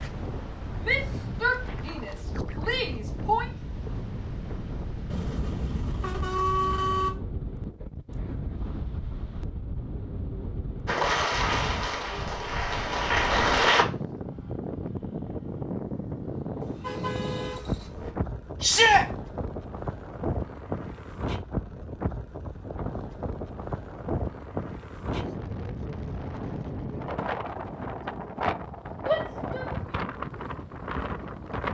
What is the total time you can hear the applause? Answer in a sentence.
You can hear the applause for 3 seconds altogether.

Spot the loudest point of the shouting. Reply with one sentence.
The loudest moment of the shouting is at 19 seconds.